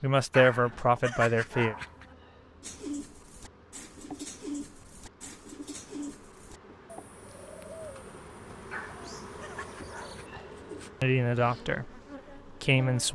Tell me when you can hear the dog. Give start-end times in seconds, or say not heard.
0.3-2.0, 8.7-10.4.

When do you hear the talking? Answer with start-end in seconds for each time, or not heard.
0.0-1.8, 11.0-11.9, 12.6-13.1.